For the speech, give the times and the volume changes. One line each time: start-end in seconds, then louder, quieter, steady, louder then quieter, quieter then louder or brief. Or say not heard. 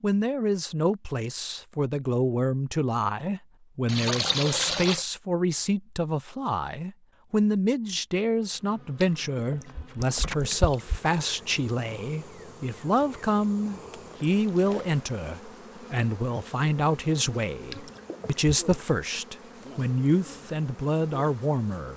0.0-21.9 steady.